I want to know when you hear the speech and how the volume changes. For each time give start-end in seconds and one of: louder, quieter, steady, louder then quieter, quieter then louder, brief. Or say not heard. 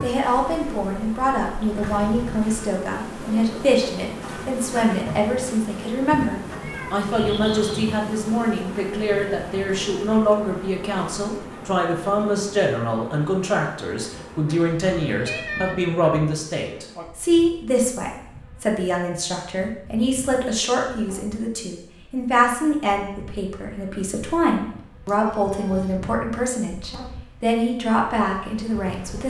0.0-29.2 steady.